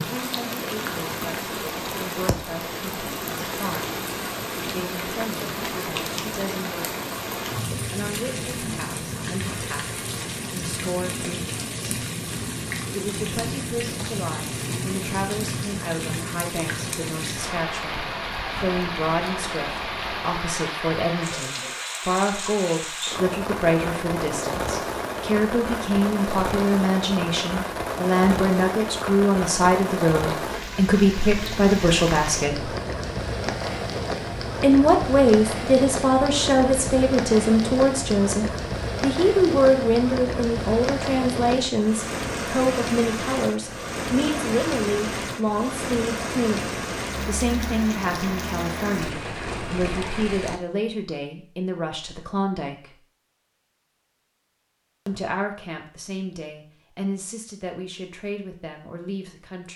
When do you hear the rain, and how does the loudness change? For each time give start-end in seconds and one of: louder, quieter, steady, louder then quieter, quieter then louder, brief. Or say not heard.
0.0-50.6 steady.